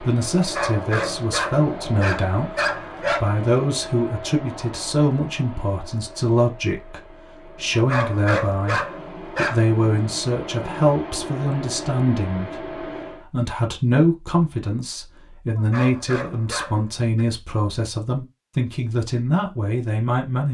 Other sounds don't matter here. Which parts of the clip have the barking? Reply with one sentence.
You can hear the barking from 0.3 to 3.2 s, from 7.7 to 9.7 s and from 15.6 to 17.2 s.